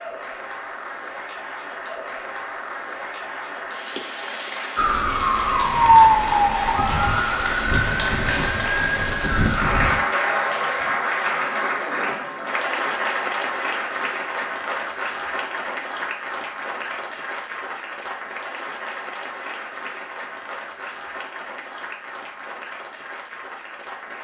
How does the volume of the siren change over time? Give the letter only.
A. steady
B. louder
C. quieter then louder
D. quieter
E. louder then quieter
D.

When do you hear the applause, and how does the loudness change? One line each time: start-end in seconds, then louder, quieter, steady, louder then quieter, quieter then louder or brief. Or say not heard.
0.0-24.1 louder then quieter.